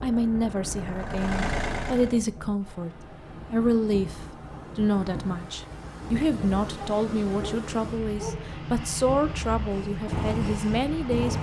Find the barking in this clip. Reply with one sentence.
The barking can be heard from 6.8 to 8.3 s.